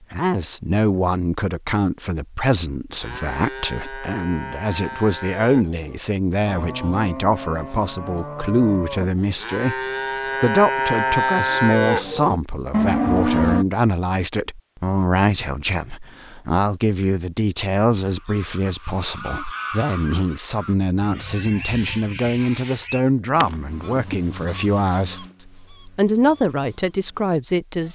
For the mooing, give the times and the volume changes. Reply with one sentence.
You can hear the mooing from 3.0 to 13.7 s, getting louder.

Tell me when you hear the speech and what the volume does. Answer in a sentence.
You can hear the speech from 0.1 to 27.9 s, at a steady volume.